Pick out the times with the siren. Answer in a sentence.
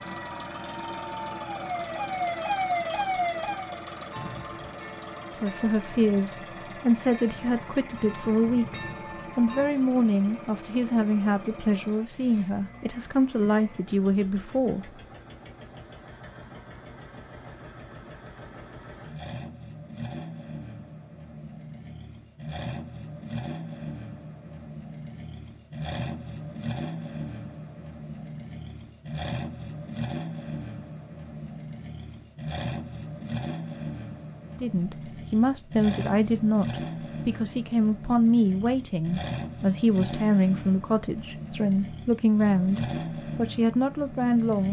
The siren can be heard from 0.0 to 3.9 s.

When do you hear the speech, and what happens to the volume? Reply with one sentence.
The speech can be heard from 5.4 to 14.9 s, at a steady volume; and from 34.5 to 44.6 s, at a steady volume.